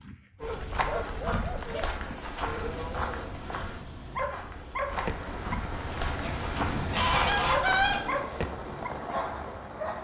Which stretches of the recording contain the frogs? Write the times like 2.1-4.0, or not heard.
not heard.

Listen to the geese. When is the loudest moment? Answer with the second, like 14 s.
8 s.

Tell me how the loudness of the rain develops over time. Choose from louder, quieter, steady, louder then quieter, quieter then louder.
steady.